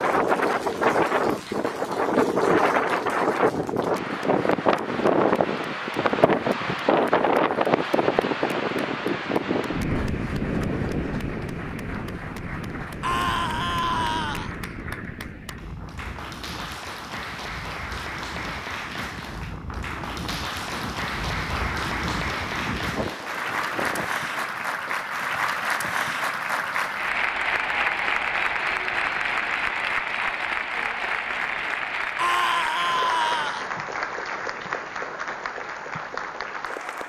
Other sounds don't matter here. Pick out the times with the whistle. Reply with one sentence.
You can't hear the whistle here.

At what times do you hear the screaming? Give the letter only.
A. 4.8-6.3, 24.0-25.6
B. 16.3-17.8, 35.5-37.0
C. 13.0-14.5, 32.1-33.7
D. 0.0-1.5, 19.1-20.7
C.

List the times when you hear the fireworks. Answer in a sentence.
The fireworks can't be heard in this clip.